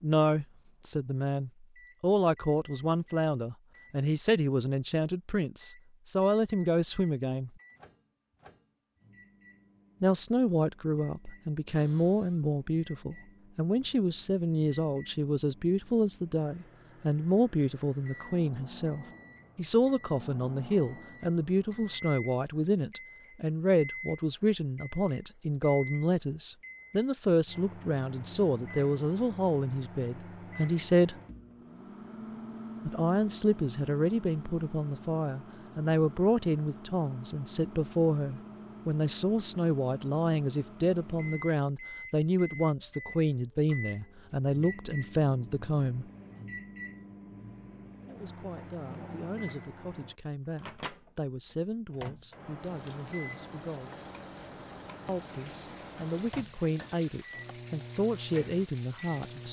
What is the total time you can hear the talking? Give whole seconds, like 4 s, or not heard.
52 s.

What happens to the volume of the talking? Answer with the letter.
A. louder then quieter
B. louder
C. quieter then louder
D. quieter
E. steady
D.